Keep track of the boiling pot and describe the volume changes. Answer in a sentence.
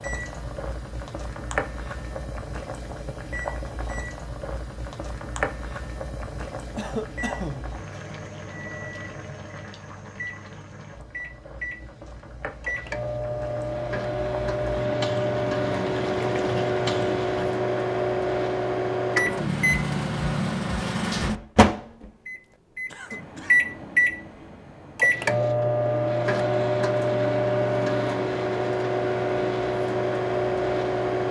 The volume of the boiling pot goes down, then up.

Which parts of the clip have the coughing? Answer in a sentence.
The coughing can be heard from 6.8 to 7.8 s and from 22.9 to 23.6 s.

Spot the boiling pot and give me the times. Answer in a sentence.
You can hear the boiling pot from 0.0 to 17.6 s.